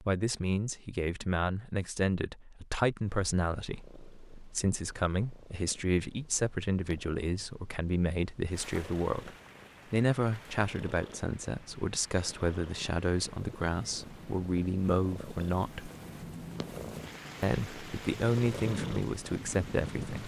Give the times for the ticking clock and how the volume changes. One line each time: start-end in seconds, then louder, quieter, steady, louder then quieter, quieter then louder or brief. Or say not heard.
not heard.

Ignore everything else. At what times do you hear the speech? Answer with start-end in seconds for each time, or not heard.
0.0-9.3, 9.9-15.9, 17.4-20.2.